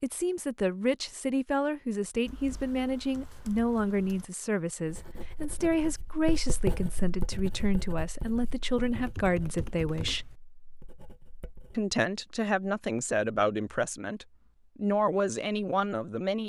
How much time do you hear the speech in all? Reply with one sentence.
The speech can be heard for 15 seconds in total.